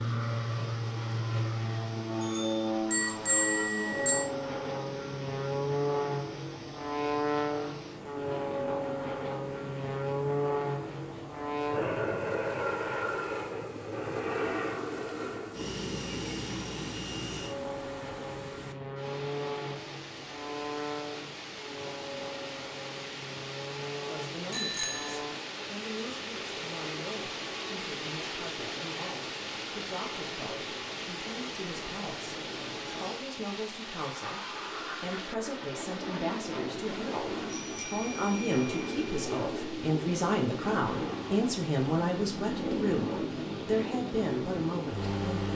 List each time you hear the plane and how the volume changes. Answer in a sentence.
The plane can be heard from 0.0 to 45.5 s, getting quieter then louder.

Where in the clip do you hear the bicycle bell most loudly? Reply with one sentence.
The loudest moment of the bicycle bell is at 3 seconds.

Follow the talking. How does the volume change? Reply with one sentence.
The volume of the talking goes up.